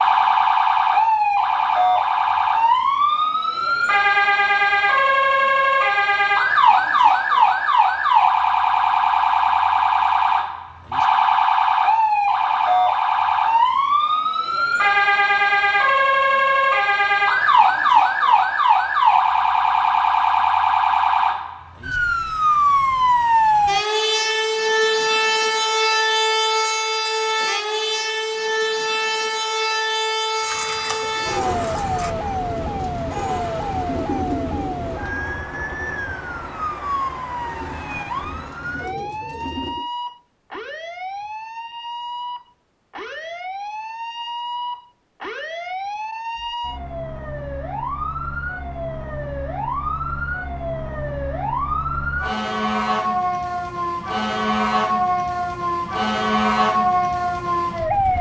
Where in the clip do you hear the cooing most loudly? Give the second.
34 s.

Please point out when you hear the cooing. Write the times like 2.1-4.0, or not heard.
30.4-39.9.